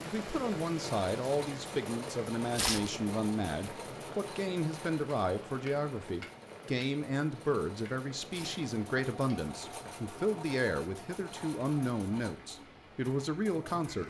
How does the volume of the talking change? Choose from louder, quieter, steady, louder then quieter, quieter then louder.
steady.